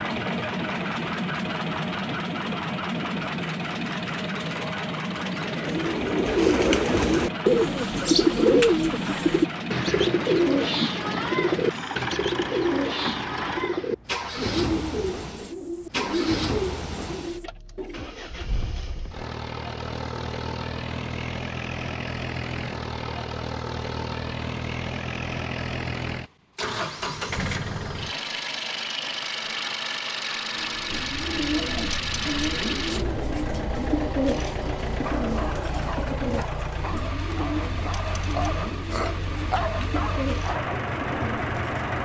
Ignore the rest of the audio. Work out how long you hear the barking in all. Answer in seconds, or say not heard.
6 s.